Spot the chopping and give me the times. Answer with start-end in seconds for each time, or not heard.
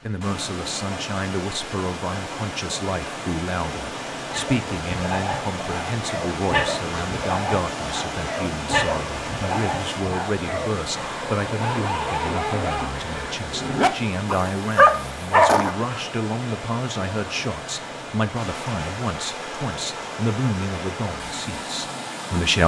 not heard.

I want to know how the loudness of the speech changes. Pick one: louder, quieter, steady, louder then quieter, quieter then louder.
steady.